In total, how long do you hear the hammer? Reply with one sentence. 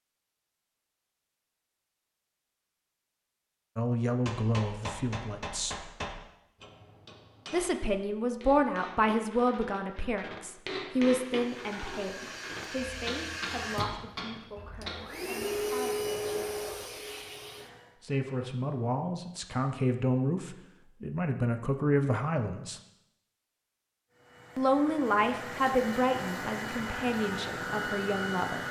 You can hear the hammer for 11 seconds altogether.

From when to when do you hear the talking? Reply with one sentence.
The talking can be heard from 3.8 to 5.9 s, from 7.5 to 16.6 s, from 18.0 to 22.8 s and from 24.6 to 28.6 s.